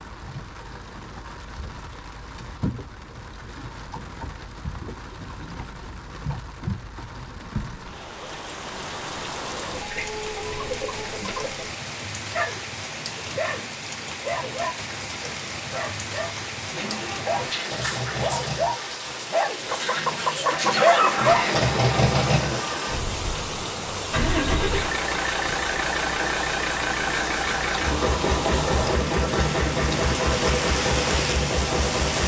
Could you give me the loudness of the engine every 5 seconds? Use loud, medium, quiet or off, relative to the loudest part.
off, off, off, medium, loud, loud, loud.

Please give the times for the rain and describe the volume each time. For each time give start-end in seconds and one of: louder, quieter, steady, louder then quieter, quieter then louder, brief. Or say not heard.
0.0-32.2 louder.